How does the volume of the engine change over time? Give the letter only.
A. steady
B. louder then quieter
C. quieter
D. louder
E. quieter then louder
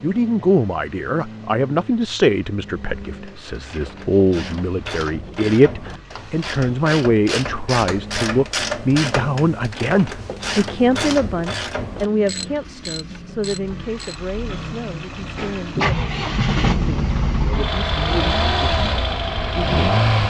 D.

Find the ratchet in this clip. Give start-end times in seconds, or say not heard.
3.0-14.3.